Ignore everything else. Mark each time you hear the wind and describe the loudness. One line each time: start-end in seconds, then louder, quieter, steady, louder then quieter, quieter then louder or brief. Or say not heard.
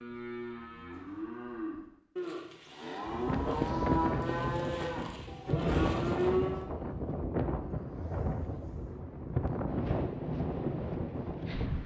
3.0-11.8 steady.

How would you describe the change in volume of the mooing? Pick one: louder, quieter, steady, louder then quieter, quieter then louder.
louder.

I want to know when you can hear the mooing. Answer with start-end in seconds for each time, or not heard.
0.0-6.7.